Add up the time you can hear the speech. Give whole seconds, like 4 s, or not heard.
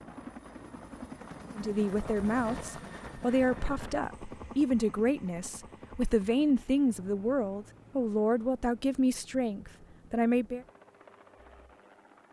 9 s.